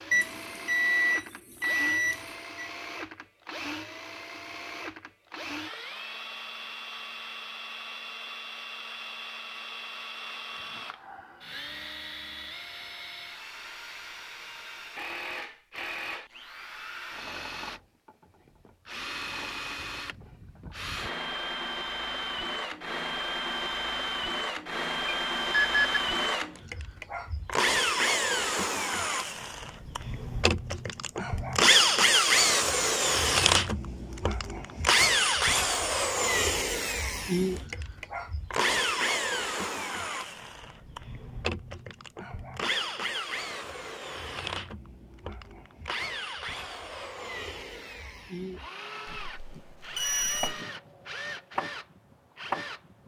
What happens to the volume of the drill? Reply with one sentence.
The loudness of the drill goes up, then down.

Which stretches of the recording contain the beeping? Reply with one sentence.
You can hear the beeping from 0.1 to 2.7 s, from 25.1 to 26.0 s and from 49.2 to 50.6 s.